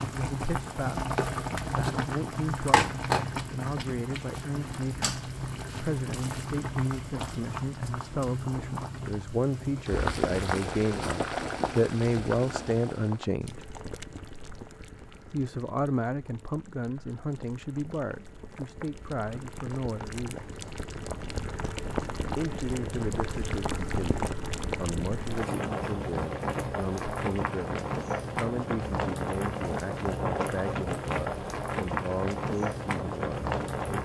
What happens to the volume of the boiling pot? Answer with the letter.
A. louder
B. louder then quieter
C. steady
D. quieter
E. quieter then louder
E.